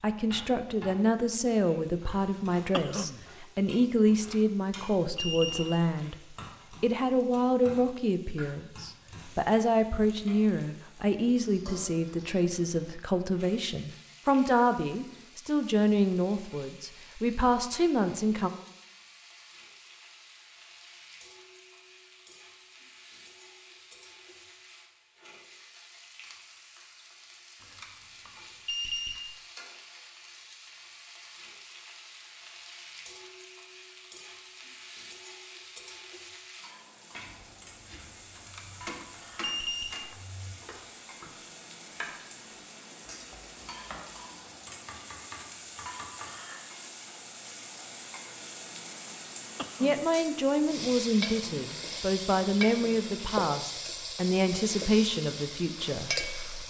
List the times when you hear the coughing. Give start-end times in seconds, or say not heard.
2.7-3.2, 49.5-50.0.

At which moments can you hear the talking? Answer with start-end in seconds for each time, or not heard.
0.0-18.5, 49.8-56.6.